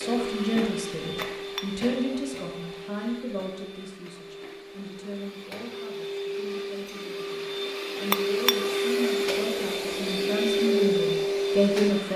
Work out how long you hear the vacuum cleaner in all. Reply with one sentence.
You can hear the vacuum cleaner for 12 seconds altogether.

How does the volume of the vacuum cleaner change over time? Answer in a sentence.
The loudness of the vacuum cleaner goes down, then up.